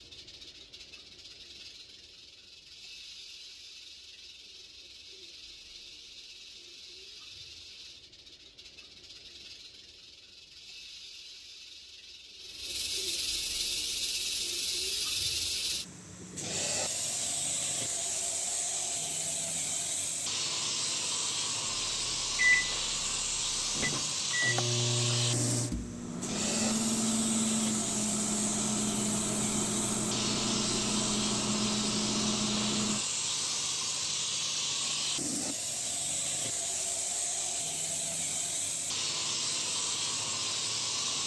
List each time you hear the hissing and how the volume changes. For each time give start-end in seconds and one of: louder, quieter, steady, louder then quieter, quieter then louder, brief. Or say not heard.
0.0-41.2 louder.